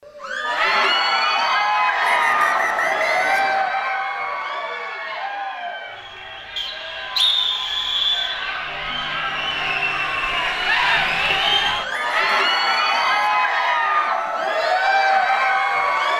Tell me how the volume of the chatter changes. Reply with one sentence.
The volume of the chatter goes down, then up.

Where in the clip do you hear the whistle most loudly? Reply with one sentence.
The volume of the whistle peaks at 7 seconds.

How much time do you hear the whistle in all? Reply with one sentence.
You can hear the whistle for 5 seconds altogether.